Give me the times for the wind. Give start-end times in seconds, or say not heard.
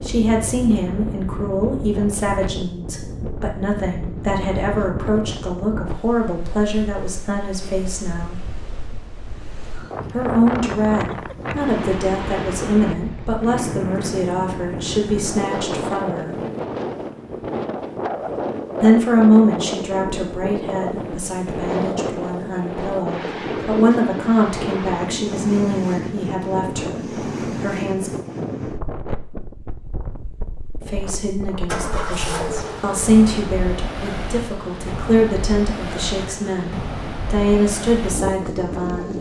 0.0-39.1.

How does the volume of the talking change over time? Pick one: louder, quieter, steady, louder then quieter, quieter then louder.
steady.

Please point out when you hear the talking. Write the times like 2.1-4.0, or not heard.
0.0-8.4, 10.1-16.4, 18.8-28.1, 30.9-39.1.